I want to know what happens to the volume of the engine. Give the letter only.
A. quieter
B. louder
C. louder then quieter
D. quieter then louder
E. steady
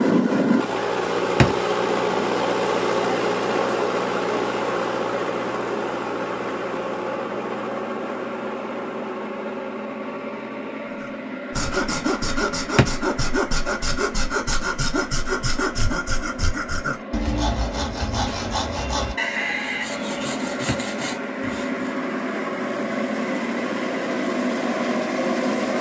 D.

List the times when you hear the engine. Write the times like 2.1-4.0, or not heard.
0.0-25.7.